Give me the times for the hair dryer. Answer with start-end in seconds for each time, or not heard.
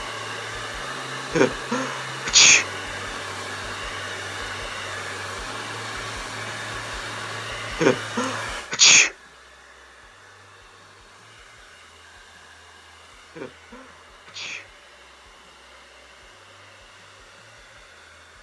0.0-18.3.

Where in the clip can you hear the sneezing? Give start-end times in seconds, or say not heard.
1.3-2.6, 7.8-9.1, 13.3-14.7.